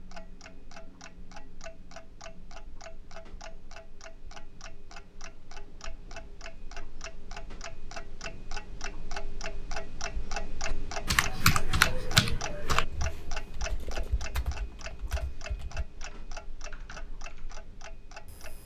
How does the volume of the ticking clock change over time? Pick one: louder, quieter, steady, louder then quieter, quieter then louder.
louder then quieter.